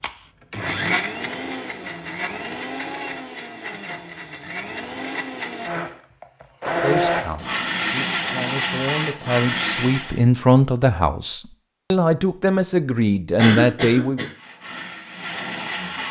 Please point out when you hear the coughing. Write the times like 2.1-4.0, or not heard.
13.3-14.3.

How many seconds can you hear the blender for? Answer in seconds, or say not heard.
12 s.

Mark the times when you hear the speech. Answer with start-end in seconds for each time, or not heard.
6.8-14.2.